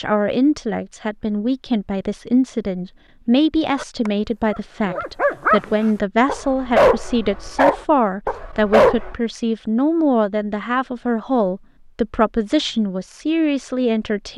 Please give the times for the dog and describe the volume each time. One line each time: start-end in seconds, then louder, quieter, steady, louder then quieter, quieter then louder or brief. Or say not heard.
3.8-9.2 louder then quieter.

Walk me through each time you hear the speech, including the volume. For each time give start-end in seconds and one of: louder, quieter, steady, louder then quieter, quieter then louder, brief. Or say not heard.
0.0-14.3 steady.